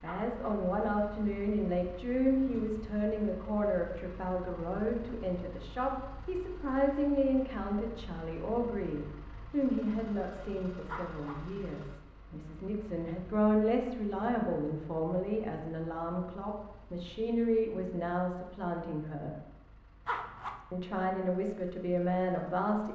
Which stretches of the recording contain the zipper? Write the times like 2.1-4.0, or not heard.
0.1-0.6, 10.8-11.4, 20.1-20.6.